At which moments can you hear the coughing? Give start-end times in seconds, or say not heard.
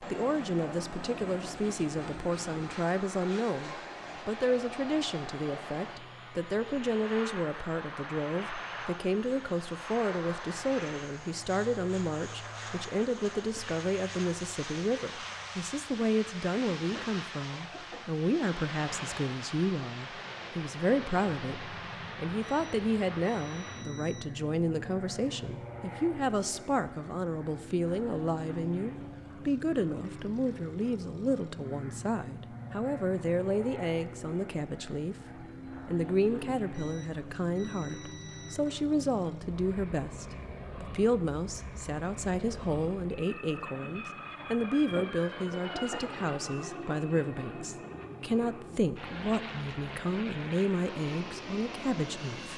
16.9-18.2, 44.9-46.2.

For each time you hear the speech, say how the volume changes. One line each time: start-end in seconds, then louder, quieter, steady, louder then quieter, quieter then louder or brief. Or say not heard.
0.0-35.1 steady
35.9-52.5 steady.